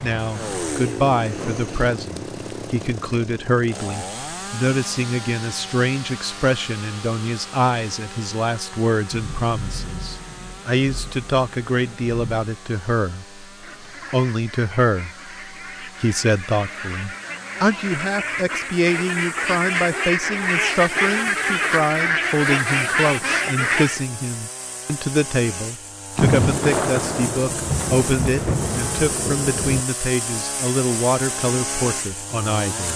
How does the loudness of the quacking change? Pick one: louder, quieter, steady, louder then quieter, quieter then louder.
louder.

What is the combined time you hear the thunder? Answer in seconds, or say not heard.
7 s.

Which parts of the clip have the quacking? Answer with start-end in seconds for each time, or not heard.
13.5-24.1.